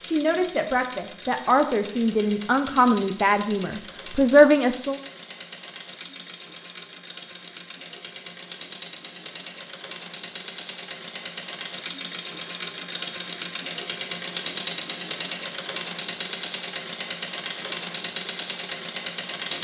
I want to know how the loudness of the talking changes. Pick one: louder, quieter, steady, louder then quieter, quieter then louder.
louder.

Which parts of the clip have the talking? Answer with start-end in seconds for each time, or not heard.
0.0-5.0.